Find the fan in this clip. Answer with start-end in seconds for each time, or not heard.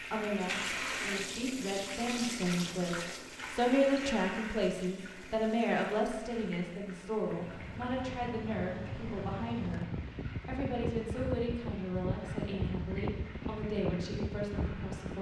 7.4-15.1.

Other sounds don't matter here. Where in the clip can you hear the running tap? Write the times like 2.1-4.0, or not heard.
0.0-15.1.